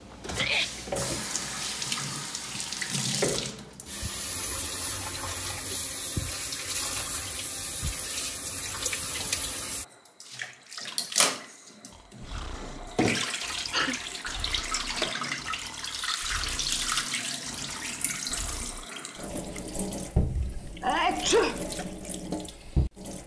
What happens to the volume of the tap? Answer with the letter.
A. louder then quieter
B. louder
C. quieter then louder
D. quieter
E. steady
E.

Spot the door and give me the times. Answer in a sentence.
You can't hear the door here.